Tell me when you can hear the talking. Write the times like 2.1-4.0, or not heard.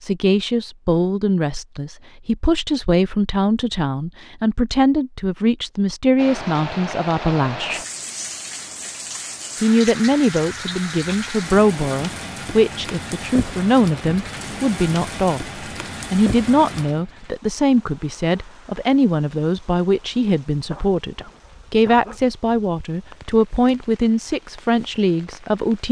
0.0-7.8, 9.6-25.8.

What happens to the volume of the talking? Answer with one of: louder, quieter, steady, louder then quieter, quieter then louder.
steady.